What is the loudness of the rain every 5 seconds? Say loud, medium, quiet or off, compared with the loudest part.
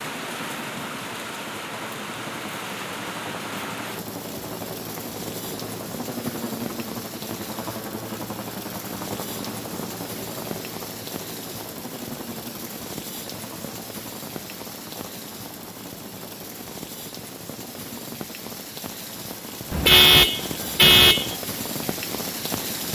loud, medium, medium, medium, loud.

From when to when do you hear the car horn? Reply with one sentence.
You can hear the car horn from 19.7 to 21.4 s.